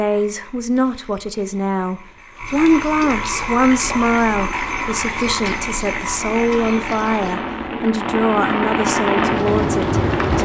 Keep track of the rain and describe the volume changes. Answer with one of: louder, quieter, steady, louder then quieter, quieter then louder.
louder.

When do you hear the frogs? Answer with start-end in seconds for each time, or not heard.
0.0-7.3.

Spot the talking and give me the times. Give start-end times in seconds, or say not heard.
0.0-10.3.